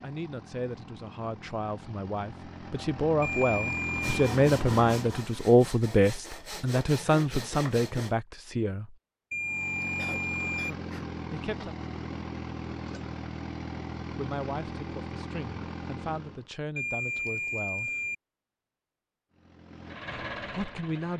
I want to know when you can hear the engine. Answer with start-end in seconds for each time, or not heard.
0.0-5.3, 9.4-16.5, 19.3-21.1.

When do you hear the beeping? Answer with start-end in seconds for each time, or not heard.
3.2-4.2, 9.3-10.7, 16.8-18.1.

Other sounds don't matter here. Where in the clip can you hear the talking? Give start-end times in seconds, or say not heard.
0.0-8.9, 11.3-11.8, 14.1-17.9, 20.4-21.1.